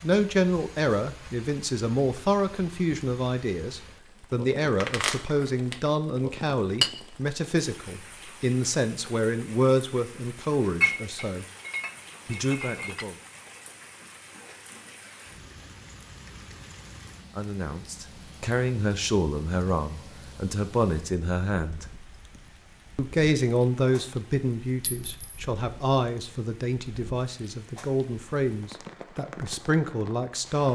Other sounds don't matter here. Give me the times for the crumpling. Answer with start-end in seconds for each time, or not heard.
4.8-5.9.